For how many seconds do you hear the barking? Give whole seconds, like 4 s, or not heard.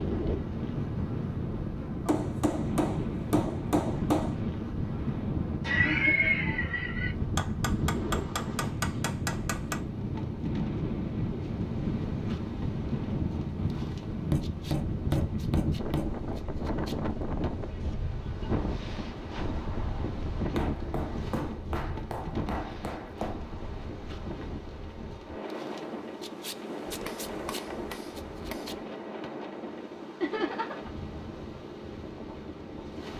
not heard.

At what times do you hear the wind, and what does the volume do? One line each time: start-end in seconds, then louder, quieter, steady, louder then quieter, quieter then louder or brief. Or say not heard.
0.0-33.1 quieter.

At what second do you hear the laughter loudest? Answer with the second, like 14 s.
6 s.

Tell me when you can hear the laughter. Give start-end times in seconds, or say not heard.
5.6-7.2, 17.7-18.5, 30.2-30.9.